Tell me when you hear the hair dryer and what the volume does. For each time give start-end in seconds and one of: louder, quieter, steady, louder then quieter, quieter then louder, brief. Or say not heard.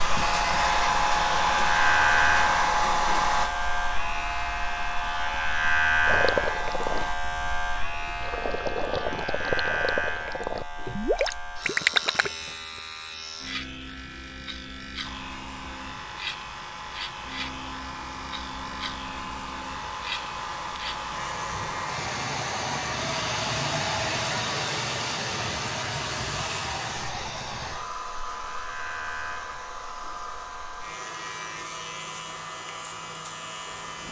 0.0-7.2 quieter
15.0-34.0 louder then quieter.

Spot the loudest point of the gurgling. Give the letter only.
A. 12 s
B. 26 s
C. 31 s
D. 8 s
A.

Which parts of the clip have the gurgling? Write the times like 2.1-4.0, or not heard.
6.0-12.3.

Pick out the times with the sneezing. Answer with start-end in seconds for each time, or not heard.
not heard.